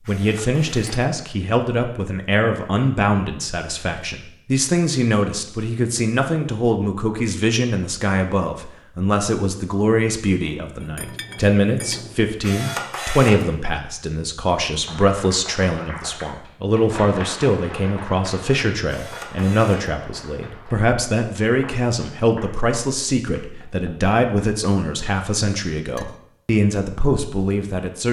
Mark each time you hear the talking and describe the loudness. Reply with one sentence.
You can hear the talking from 0.1 to 28.0 s, at a steady volume.